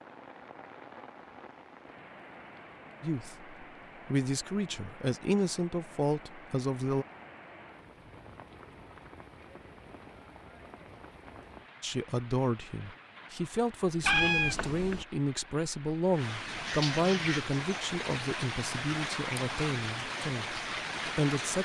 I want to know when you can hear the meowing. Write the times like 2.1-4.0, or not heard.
14.0-15.1.